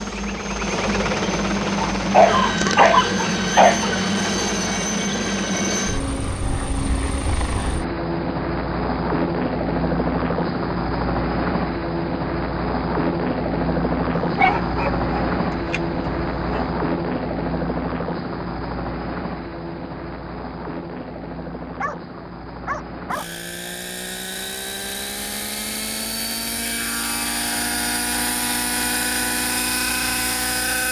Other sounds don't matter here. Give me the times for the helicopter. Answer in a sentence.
You can hear the helicopter from 0.0 to 30.8 s.